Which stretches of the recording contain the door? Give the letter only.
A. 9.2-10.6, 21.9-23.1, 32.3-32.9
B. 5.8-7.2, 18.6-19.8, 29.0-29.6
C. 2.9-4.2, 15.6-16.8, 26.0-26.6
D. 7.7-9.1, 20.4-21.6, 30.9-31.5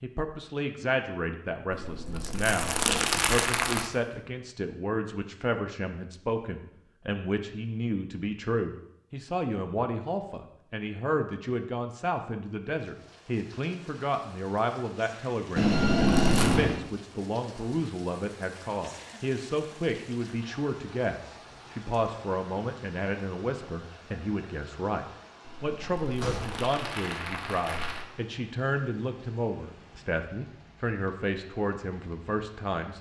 C.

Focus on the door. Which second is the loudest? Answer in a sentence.
The loudest moment of the door is at 16 seconds.